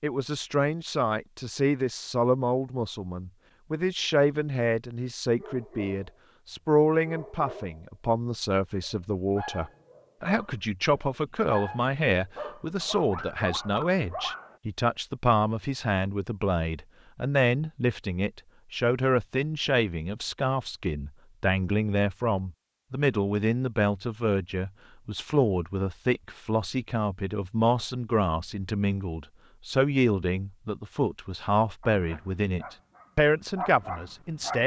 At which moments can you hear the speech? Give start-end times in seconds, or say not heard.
0.0-34.6.